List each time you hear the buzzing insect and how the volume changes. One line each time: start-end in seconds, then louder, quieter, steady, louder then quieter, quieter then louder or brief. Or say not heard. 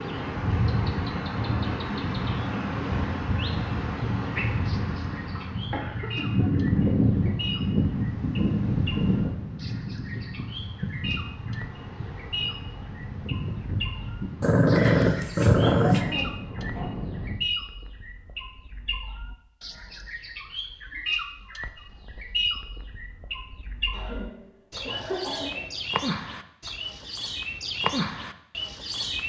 not heard.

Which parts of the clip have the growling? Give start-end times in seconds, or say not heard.
14.4-16.0.